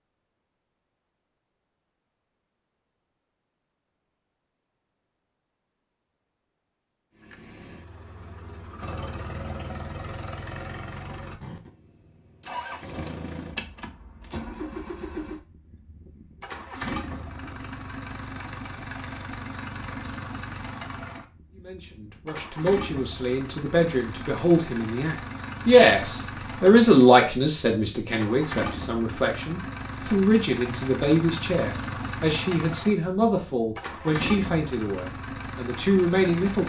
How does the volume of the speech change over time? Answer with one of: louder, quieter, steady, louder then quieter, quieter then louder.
louder then quieter.